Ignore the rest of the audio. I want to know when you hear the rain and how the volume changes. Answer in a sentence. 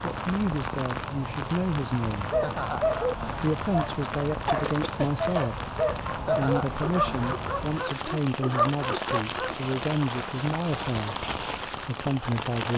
The rain can be heard from 0.0 to 12.7 s, at a steady volume.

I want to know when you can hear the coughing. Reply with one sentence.
The coughing can be heard from 4.5 to 5.5 s.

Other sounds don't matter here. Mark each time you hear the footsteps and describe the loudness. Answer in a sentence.
You can't hear the footsteps here.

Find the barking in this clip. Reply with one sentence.
The barking can be heard from 2.3 to 9.6 s.